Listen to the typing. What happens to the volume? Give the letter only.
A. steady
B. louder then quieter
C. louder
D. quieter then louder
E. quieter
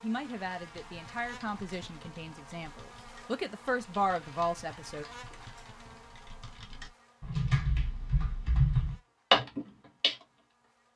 C.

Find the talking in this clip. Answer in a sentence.
You can hear the talking from 0.0 to 5.0 s.